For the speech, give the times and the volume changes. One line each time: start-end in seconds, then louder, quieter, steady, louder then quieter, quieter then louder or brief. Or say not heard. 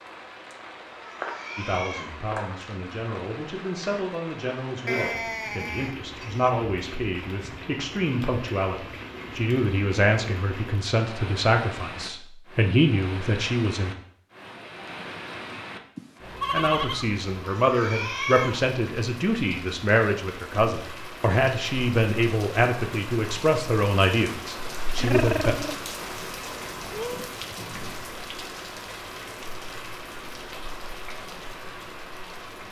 1.6-13.9 louder
16.5-25.6 steady.